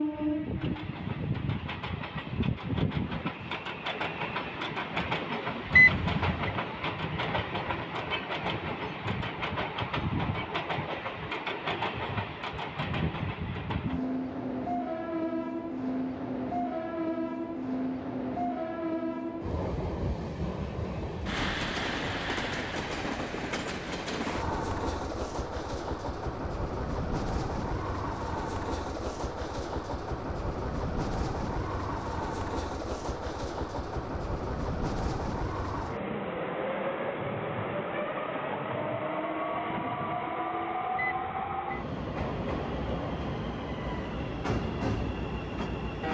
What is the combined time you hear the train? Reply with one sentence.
The train can be heard for 46 seconds in total.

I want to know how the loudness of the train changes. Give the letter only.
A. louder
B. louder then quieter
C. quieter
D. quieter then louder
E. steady
E.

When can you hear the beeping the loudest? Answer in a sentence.
The loudest moment of the beeping is at 6 seconds.